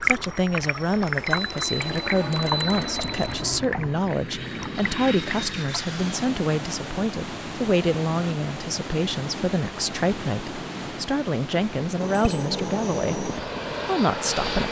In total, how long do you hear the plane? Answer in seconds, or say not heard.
9 s.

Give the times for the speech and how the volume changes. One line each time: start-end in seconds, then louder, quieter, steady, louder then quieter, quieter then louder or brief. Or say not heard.
0.0-14.6 steady.